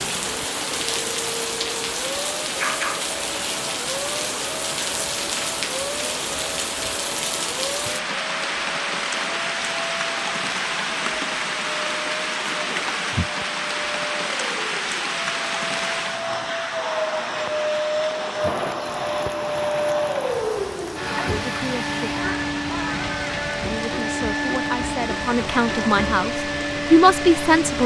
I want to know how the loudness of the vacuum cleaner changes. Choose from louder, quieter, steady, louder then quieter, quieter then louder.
louder.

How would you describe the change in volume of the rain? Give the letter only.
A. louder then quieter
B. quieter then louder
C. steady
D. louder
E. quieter
E.